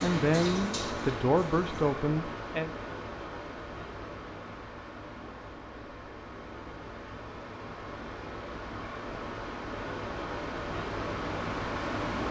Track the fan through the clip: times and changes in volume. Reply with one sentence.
You can hear the fan from 0.0 to 12.2 s, getting quieter then louder.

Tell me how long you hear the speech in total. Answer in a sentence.
The speech can be heard for 3 seconds in total.